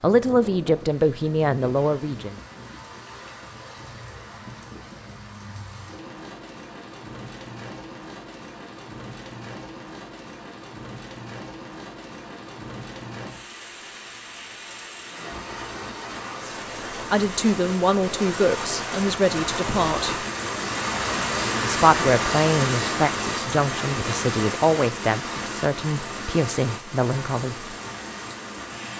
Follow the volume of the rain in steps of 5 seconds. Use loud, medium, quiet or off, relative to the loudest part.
quiet, quiet, quiet, medium, loud, medium.